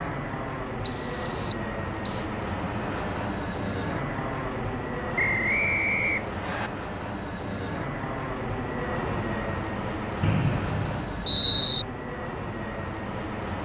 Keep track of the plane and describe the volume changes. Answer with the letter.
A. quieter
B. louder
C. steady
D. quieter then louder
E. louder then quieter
C.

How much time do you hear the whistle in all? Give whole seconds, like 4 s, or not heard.
5 s.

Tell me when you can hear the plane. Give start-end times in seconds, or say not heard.
0.0-13.5.